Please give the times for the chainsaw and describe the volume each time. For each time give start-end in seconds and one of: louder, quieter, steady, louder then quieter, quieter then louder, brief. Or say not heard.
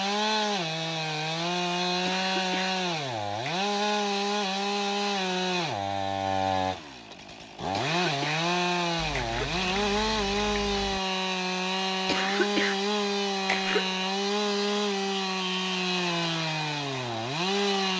0.0-17.9 steady.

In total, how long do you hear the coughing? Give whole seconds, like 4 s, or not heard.
5 s.